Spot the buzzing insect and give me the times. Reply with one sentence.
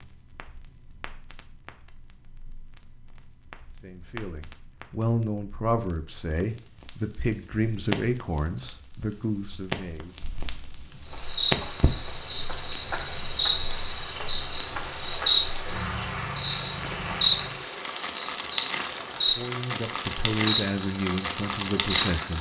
The buzzing insect can be heard from 11.1 to 22.3 s.